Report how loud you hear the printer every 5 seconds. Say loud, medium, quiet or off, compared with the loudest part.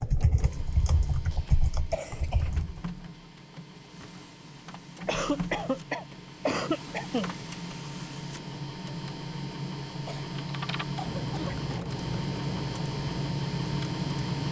quiet, medium, loud.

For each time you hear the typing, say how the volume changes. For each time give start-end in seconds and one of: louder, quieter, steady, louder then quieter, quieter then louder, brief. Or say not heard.
0.0-2.9 brief
10.4-14.4 steady.